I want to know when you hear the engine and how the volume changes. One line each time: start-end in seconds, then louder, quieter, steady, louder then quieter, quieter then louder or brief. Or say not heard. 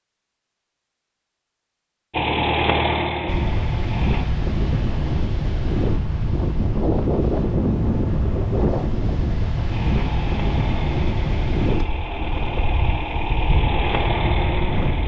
2.1-4.2 brief
9.7-15.0 louder.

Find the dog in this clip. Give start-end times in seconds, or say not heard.
not heard.